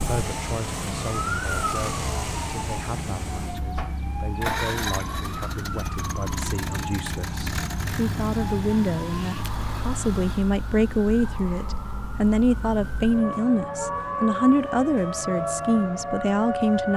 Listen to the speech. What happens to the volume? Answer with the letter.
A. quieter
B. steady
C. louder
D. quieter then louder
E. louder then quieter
C.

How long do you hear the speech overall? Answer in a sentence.
You can hear the speech for 17 seconds altogether.